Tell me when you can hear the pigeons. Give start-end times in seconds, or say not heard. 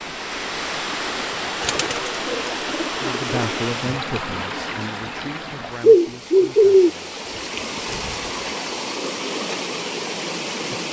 1.6-3.6, 5.8-6.9.